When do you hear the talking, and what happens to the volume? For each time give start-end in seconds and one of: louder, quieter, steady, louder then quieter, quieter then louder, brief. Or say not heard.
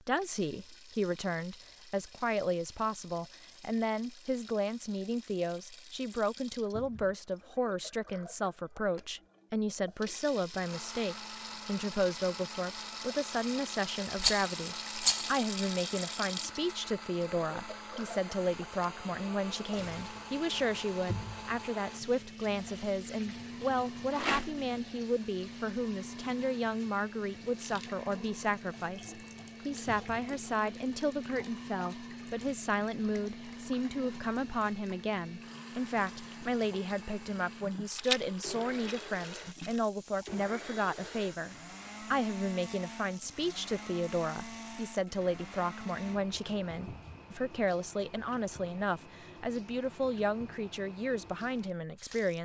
0.1-52.4 steady.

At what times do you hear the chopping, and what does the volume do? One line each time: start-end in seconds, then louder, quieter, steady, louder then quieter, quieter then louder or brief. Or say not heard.
not heard.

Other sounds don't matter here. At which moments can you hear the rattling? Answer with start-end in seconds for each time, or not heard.
14.2-15.3, 24.1-24.6, 38.0-39.8.